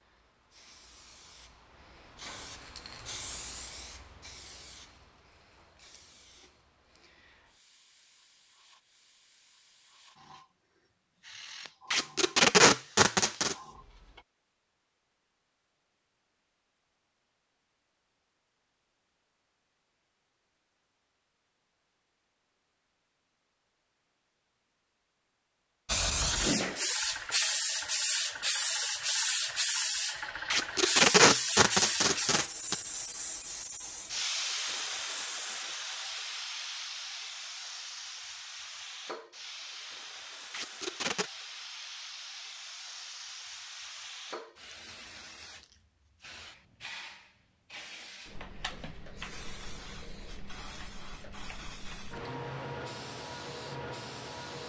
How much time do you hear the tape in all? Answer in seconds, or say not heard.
5 s.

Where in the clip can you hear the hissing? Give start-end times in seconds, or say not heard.
0.0-14.2, 25.9-54.6.